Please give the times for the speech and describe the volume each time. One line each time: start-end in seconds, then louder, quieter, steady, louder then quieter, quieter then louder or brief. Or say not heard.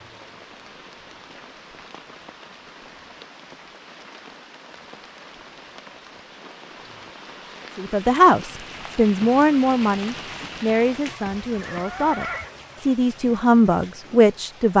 7.8-14.7 quieter then louder.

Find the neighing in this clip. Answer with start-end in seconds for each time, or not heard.
11.2-12.6.